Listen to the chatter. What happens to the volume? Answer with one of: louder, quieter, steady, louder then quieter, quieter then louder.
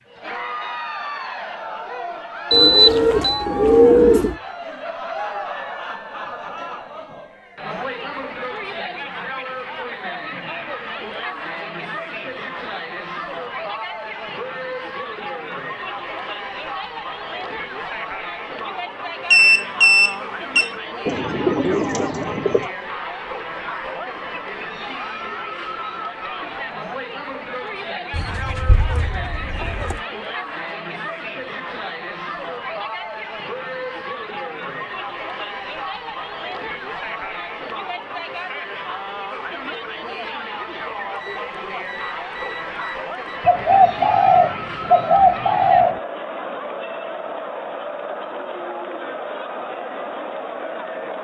steady.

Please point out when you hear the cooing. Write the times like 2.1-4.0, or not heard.
2.5-4.3, 21.1-22.6, 28.1-30.0, 43.5-46.0.